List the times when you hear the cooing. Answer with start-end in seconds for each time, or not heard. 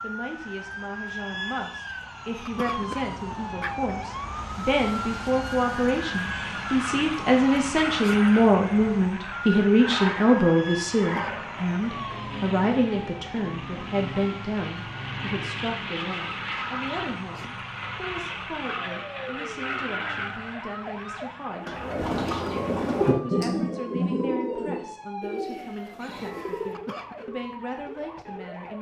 21.6-26.8.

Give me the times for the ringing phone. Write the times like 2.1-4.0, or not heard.
not heard.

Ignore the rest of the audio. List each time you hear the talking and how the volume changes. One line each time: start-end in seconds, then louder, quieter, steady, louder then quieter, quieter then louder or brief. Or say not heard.
0.0-28.7 louder then quieter.